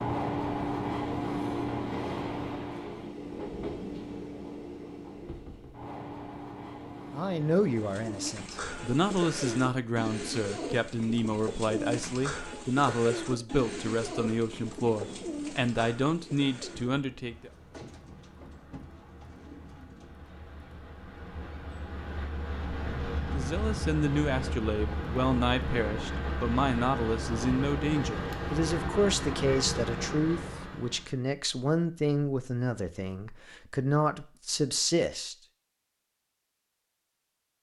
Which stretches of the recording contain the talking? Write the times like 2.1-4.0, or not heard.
7.1-17.5, 23.3-35.4.